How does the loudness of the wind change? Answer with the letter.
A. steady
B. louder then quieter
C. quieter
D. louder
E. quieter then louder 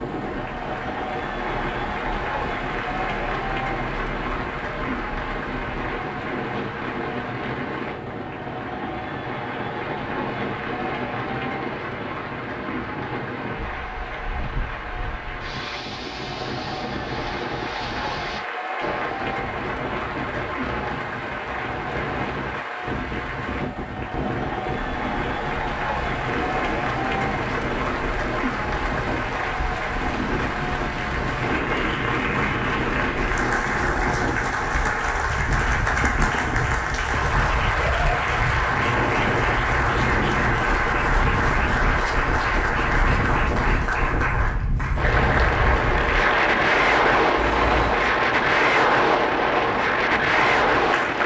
D.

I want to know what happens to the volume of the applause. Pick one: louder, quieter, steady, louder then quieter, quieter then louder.
louder.